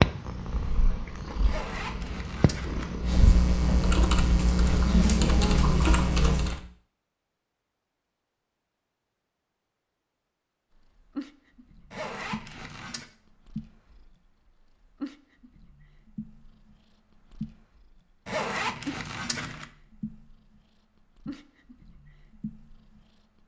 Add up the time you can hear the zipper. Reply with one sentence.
The zipper can be heard for 4 seconds in total.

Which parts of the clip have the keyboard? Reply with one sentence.
The keyboard can be heard from 0.0 to 6.6 s.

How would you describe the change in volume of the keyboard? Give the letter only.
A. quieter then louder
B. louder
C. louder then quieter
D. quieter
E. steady
B.